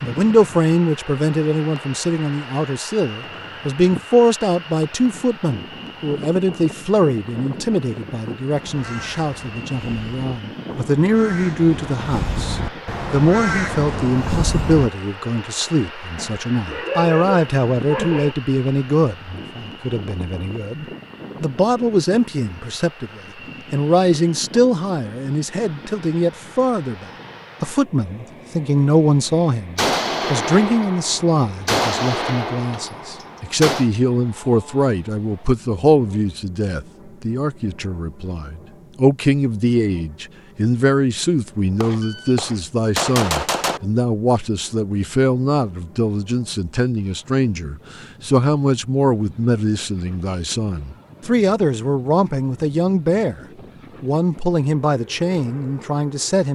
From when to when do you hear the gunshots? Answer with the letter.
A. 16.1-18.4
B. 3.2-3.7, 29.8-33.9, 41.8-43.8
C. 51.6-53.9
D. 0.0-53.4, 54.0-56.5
B.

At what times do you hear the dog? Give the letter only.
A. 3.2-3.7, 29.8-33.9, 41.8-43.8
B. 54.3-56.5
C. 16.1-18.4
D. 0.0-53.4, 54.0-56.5
C.